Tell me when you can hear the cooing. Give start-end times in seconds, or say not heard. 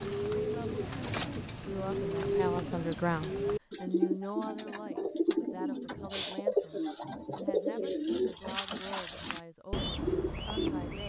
0.0-11.0.